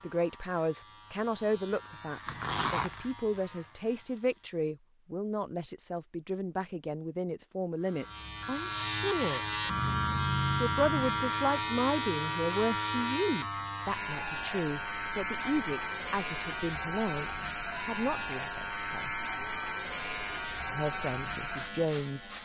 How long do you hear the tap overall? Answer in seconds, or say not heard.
not heard.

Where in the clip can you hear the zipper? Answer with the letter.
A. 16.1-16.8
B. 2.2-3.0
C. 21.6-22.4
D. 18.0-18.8
B.